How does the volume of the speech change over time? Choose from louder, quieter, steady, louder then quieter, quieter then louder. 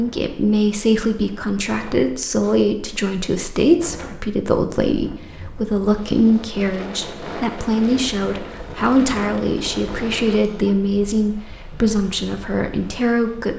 steady.